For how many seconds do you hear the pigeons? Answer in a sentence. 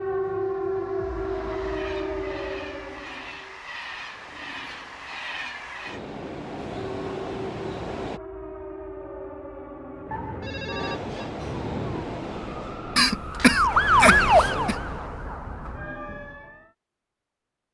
You can't hear the pigeons here.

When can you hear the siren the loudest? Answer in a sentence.
The volume of the siren peaks at 14 seconds.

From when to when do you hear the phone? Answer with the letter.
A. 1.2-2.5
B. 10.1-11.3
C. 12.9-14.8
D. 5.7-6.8
B.